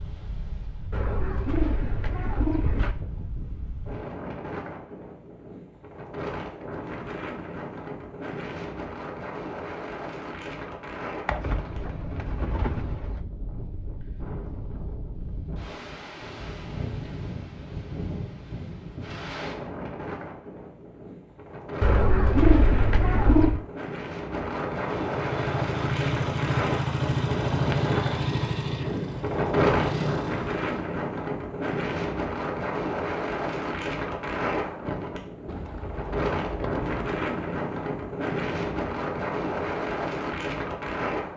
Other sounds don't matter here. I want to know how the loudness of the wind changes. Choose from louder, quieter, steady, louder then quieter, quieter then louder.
louder.